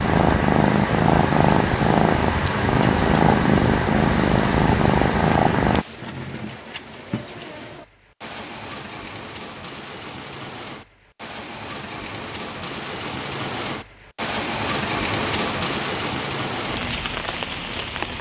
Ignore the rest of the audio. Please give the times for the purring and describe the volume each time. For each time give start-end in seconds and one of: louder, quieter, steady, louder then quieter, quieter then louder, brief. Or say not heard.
0.0-5.8 steady.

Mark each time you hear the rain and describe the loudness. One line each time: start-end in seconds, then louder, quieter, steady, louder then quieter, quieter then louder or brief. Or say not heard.
0.0-18.1 louder.